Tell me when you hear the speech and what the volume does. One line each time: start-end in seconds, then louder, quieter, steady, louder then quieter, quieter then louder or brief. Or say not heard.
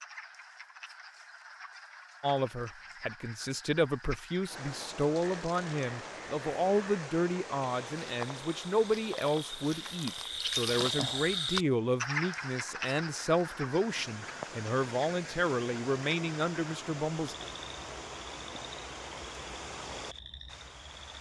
2.2-17.4 steady.